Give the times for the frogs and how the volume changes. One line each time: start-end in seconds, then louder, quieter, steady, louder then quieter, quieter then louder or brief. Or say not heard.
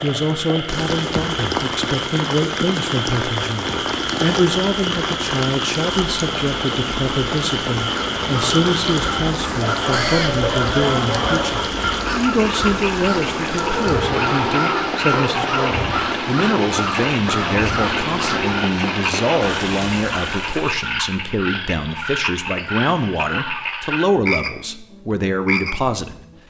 0.0-26.4 steady.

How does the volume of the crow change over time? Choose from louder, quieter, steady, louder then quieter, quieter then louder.
steady.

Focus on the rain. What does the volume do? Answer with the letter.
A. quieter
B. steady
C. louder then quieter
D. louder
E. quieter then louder
B.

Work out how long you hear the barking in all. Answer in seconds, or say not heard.
4 s.